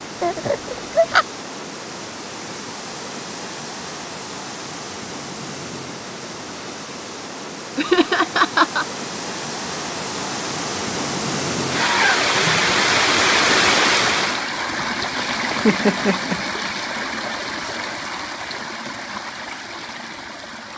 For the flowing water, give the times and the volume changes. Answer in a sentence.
You can hear the flowing water from 0.0 to 20.7 s, getting louder then quieter.